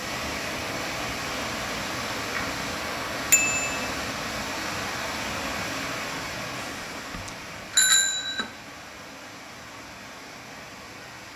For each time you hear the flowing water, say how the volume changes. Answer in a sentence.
You can hear the flowing water from 0.0 to 11.3 s, getting quieter.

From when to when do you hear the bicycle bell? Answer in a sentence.
The bicycle bell can be heard from 3.3 to 3.9 s and from 6.5 to 8.5 s.